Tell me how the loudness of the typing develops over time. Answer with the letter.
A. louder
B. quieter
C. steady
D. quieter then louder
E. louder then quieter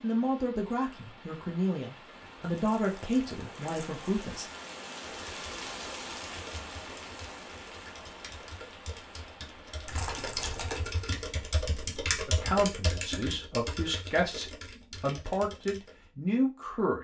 E.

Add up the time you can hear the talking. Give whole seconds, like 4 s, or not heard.
9 s.